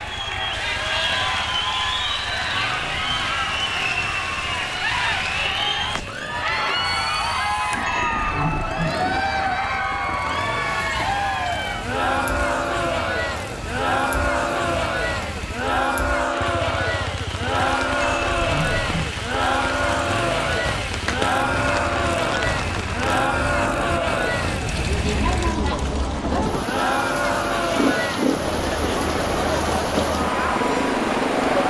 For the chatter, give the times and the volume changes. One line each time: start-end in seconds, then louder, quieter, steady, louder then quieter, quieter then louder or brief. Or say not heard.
0.0-31.6 steady.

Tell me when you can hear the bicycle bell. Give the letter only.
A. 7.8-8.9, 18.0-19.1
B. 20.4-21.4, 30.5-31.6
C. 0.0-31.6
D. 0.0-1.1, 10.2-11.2
A.